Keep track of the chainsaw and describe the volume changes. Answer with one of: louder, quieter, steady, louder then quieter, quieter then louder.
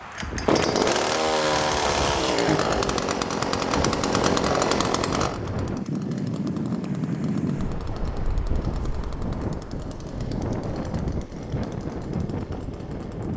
quieter.